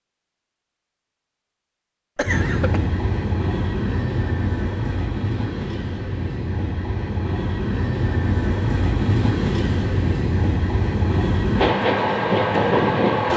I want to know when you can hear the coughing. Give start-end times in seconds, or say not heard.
2.1-2.8.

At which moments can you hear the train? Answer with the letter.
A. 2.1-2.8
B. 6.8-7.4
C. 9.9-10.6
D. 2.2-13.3
D.